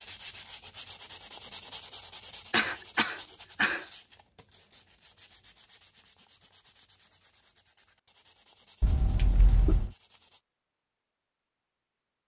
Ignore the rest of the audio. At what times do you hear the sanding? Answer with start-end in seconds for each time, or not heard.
0.0-10.4.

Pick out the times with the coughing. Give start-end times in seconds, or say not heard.
2.5-3.9, 8.8-9.9.